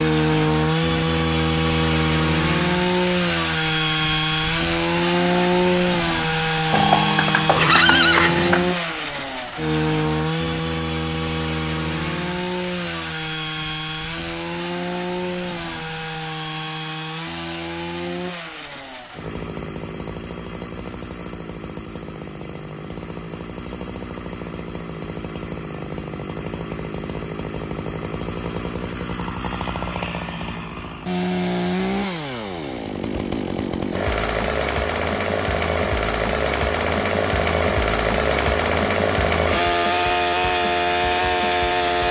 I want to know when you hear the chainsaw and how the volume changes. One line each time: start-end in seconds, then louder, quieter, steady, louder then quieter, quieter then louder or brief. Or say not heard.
0.0-42.0 quieter then louder.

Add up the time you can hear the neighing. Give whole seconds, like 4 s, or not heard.
2 s.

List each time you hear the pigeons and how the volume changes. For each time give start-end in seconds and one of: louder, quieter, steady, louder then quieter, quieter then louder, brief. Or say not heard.
not heard.